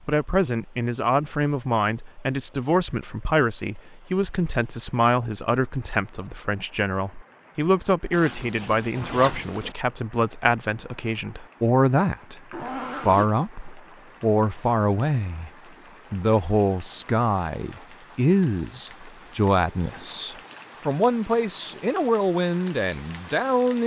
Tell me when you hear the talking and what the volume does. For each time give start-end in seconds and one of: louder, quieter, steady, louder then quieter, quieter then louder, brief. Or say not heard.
0.1-15.5 steady
16.1-23.8 steady.